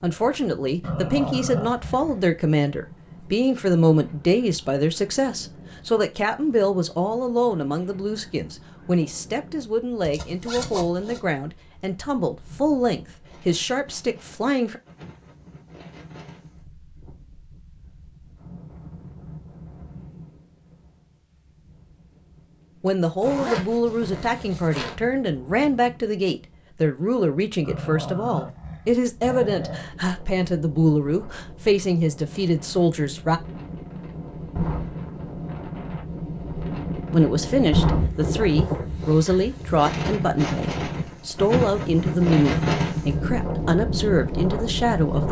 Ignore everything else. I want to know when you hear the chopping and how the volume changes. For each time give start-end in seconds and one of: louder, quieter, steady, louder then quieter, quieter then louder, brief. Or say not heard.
not heard.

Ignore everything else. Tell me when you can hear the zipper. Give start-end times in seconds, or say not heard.
10.0-11.2, 23.2-24.9.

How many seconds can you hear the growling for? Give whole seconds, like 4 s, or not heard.
4 s.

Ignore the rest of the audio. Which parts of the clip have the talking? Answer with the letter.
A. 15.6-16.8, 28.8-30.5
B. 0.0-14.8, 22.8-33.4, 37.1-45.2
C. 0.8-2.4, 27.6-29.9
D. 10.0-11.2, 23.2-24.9
B.